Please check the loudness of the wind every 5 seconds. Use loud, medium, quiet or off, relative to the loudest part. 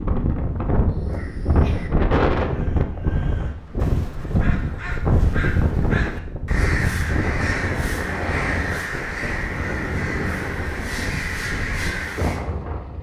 loud, loud, medium.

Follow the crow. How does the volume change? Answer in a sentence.
The volume of the crow goes up.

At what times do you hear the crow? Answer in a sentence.
You can hear the crow from 0.9 to 12.4 s.